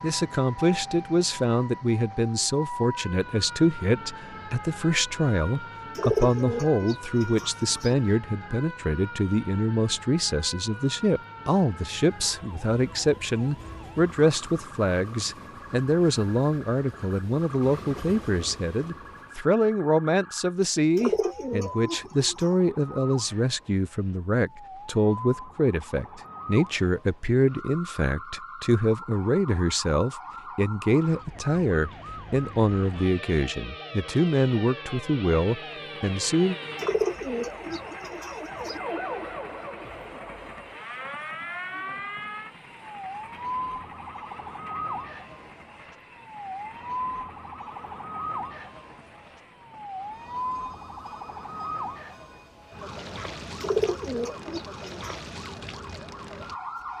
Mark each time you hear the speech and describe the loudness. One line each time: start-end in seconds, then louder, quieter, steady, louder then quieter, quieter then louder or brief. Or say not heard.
0.0-36.5 steady.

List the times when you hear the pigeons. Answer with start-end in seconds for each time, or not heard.
6.0-8.0, 20.9-22.5, 36.8-38.8, 53.6-55.1.